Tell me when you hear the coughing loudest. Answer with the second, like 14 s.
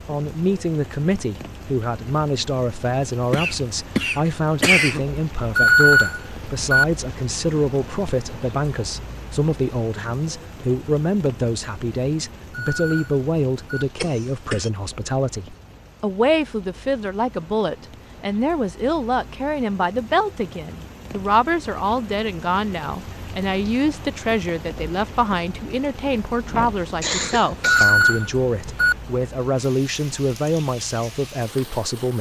5 s.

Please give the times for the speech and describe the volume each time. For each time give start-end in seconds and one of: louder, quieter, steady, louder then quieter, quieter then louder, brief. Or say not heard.
0.1-32.1 steady.